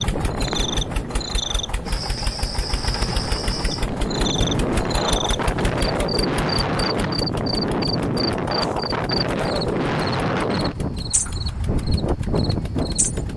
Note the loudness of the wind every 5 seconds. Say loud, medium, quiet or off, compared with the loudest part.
medium, loud, loud.